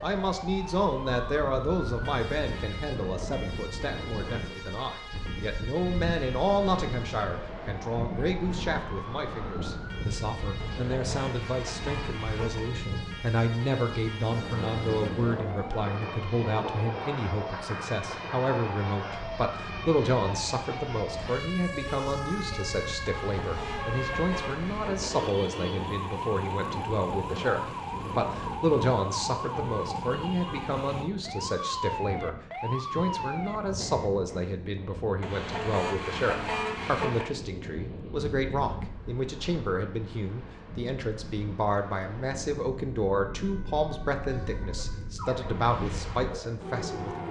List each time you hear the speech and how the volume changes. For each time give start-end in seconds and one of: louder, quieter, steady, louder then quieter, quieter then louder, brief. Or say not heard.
0.0-47.2 steady.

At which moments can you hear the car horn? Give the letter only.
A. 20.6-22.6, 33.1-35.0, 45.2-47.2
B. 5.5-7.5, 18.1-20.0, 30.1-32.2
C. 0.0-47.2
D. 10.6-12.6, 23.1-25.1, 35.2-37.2
D.